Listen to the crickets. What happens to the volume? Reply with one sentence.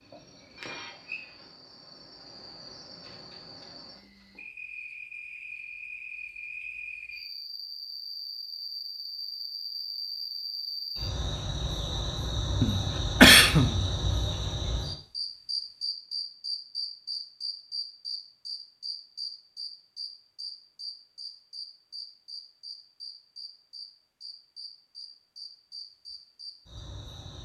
The loudness of the crickets goes up, then down.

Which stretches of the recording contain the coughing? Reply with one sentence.
The coughing can be heard from 12.6 to 13.8 s.